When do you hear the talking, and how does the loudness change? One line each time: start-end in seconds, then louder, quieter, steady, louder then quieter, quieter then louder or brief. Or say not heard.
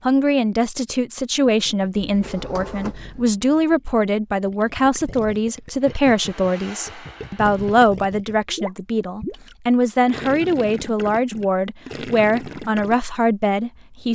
0.1-14.0 steady.